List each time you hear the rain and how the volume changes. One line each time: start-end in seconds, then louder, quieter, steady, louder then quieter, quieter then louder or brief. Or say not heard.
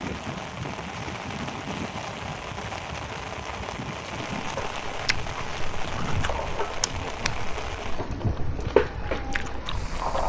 0.0-10.2 steady.